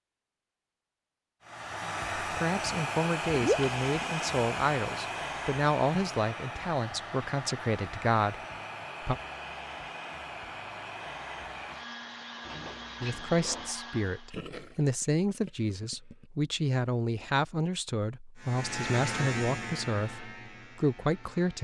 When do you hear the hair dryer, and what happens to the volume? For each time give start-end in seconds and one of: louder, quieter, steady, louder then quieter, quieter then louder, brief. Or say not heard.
1.4-14.4 quieter.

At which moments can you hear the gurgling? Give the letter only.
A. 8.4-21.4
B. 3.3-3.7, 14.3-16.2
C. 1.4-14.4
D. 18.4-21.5
B.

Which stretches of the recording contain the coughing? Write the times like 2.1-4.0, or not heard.
not heard.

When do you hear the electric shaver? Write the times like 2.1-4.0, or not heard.
18.4-21.5.